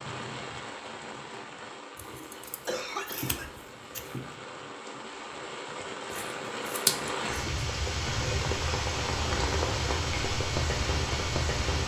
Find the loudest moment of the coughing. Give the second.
3 s.